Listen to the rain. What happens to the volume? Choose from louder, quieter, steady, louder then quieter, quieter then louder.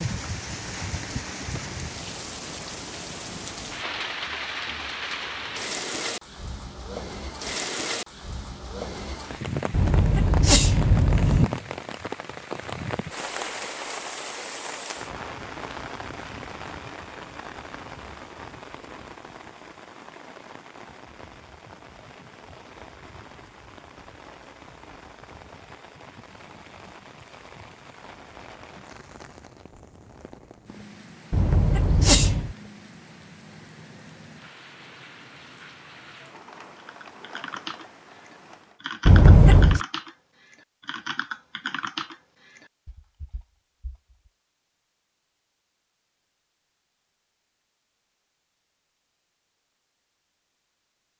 quieter.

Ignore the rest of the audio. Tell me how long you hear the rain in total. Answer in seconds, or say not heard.
39 s.